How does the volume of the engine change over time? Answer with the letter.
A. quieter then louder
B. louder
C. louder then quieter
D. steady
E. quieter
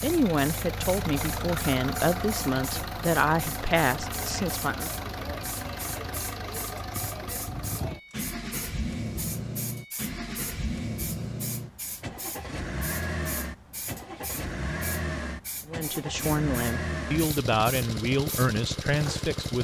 D.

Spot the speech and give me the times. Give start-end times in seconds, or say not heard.
0.0-4.9, 15.7-19.6.